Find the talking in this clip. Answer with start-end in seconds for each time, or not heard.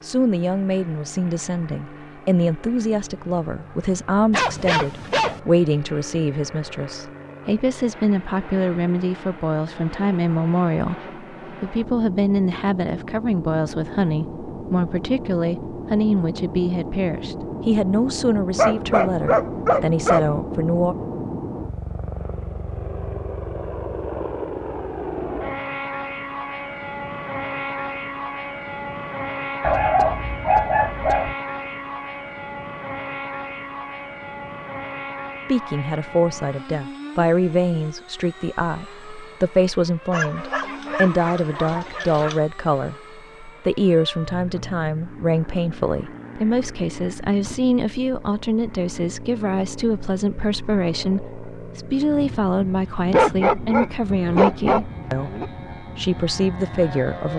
0.0-20.9, 35.5-57.3.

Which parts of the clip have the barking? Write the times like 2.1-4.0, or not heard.
4.3-5.4, 18.6-20.2, 29.6-31.4, 40.1-42.4, 53.0-55.5.